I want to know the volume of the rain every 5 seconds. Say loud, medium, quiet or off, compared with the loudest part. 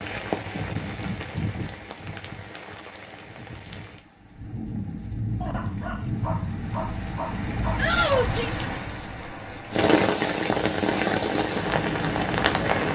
medium, medium, loud.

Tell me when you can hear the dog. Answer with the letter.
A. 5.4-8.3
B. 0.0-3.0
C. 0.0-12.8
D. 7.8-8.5
A.